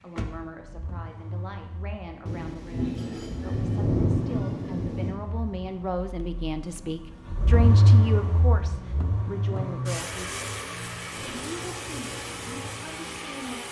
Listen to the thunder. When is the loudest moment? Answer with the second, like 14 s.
4 s.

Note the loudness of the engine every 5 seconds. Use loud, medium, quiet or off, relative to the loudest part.
medium, loud, medium.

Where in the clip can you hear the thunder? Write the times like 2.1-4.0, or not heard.
2.2-5.2.